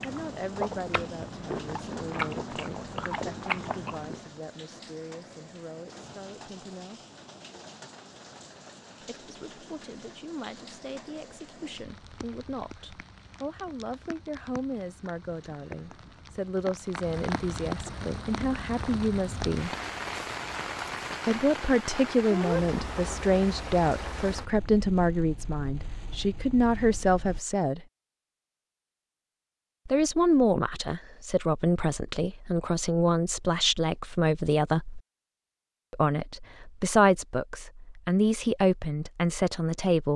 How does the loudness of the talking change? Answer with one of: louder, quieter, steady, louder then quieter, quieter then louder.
louder.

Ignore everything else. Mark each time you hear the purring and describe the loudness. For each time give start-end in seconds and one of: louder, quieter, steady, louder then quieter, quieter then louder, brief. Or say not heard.
not heard.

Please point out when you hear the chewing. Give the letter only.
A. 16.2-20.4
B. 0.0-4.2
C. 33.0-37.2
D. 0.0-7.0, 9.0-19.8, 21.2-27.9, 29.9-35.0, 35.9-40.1
B.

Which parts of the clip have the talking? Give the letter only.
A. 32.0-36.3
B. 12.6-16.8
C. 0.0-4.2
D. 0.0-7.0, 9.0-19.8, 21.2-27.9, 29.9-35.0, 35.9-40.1
D.